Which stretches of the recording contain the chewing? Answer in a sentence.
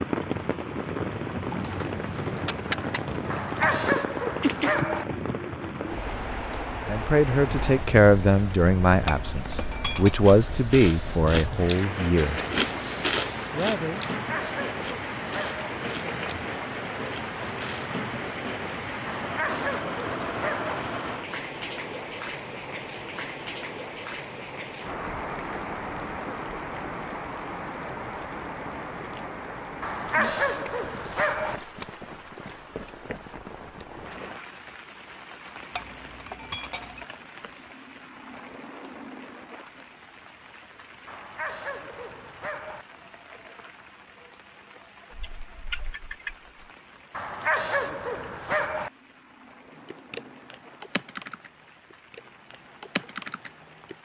The chewing can be heard from 10.2 to 18.0 s.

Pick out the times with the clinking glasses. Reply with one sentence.
You can hear the clinking glasses from 9.1 to 10.2 s and from 35.8 to 37.0 s.